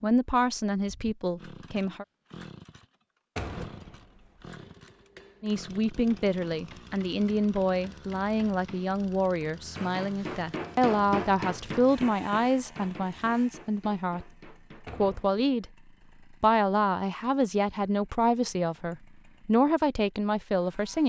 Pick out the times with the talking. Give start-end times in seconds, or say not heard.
0.0-2.0, 5.4-14.3, 14.9-15.7, 16.4-21.0.